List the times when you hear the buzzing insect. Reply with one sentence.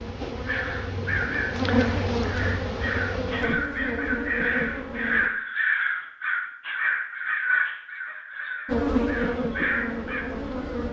You can hear the buzzing insect from 0.0 to 5.3 s and from 8.7 to 10.8 s.